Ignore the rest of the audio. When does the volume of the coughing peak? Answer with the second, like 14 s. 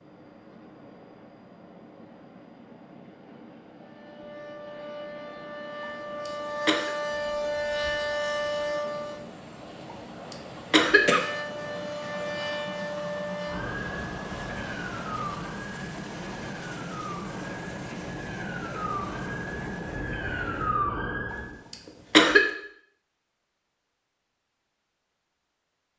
22 s.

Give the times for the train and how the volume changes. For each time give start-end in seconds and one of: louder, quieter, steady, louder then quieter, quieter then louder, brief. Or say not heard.
0.0-20.9 louder.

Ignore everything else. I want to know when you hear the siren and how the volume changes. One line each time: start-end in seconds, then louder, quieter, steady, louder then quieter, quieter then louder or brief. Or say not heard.
3.8-9.3 louder
11.1-21.6 quieter then louder.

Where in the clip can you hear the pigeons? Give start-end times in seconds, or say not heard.
not heard.